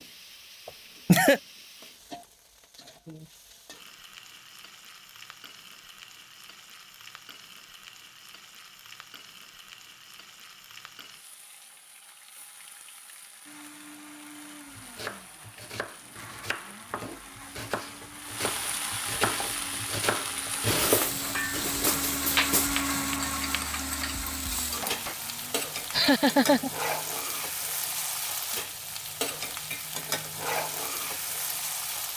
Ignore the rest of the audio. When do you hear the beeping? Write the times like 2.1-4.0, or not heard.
not heard.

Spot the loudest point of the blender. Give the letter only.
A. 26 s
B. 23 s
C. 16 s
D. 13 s
B.